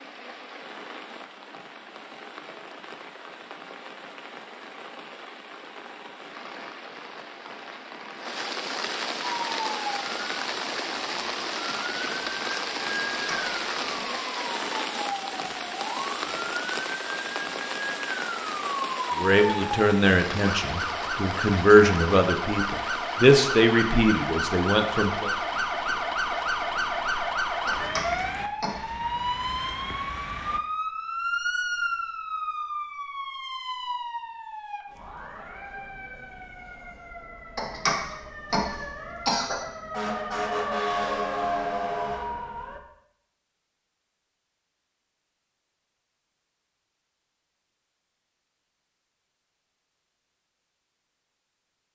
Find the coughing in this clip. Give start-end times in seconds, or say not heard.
13.0-14.1, 27.6-28.9, 37.5-39.5.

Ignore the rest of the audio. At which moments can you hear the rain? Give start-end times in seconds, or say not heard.
0.0-30.6.